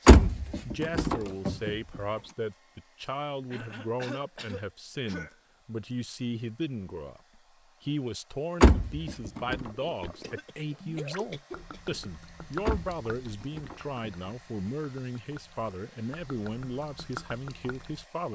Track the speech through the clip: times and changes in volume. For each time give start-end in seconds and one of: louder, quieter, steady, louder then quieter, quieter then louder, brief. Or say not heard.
0.0-18.2 steady.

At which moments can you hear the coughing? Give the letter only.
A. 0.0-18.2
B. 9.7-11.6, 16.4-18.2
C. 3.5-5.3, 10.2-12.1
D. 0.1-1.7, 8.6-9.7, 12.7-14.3
C.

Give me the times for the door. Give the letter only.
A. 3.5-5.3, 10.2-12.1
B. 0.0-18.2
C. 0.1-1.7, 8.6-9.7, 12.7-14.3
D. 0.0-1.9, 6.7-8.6
C.